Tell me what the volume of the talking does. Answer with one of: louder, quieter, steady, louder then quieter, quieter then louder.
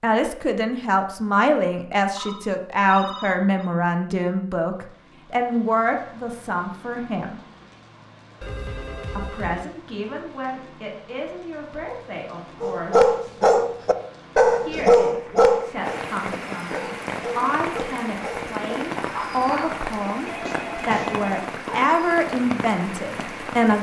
quieter then louder.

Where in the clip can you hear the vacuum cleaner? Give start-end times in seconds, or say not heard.
not heard.